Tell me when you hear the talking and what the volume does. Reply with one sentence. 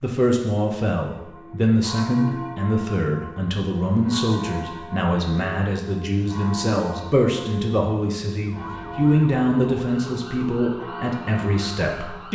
The talking can be heard from 0.0 to 12.3 s, at a steady volume.